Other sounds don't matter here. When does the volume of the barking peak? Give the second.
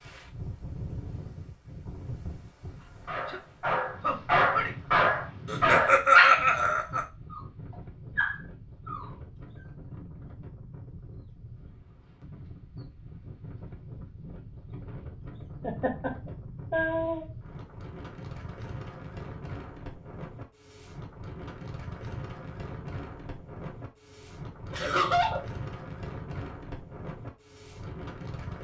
6 s.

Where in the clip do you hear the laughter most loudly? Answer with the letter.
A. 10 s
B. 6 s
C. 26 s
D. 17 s
B.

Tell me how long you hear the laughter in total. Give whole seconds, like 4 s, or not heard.
4 s.